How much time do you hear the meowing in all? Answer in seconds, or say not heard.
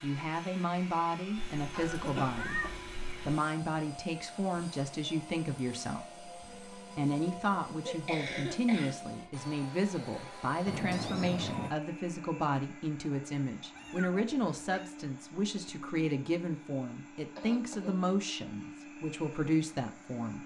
4 s.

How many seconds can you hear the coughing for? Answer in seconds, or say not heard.
3 s.